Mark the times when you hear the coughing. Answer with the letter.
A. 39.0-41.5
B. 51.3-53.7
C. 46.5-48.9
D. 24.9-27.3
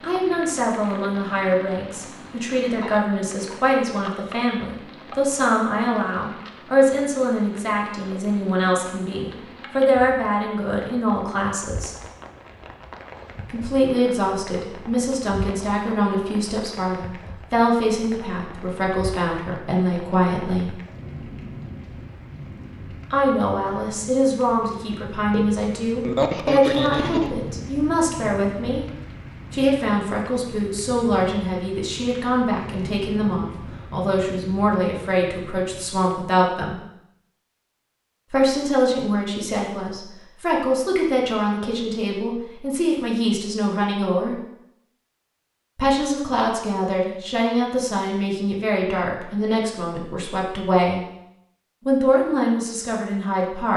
D.